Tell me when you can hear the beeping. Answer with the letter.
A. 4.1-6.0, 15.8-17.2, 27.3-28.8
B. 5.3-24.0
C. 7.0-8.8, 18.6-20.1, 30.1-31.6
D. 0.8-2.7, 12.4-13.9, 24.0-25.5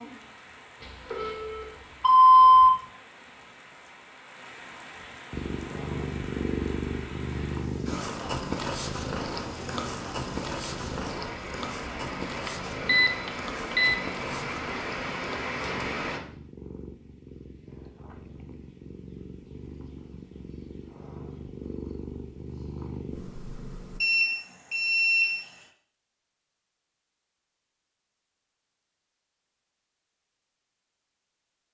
D.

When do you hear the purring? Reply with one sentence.
The purring can be heard from 5.3 to 24.0 s.